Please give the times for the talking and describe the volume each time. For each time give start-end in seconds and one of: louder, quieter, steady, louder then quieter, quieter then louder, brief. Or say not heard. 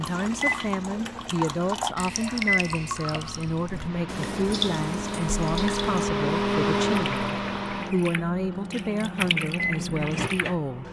0.0-10.8 steady.